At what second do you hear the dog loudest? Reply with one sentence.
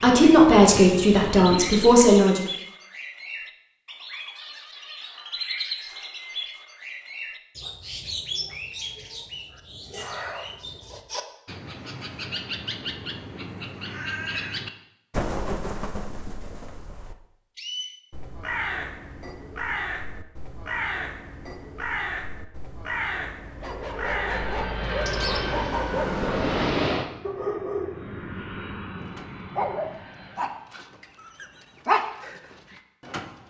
The loudest moment of the dog is at 32 seconds.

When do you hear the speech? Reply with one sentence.
The speech can be heard from 0.0 to 2.4 s.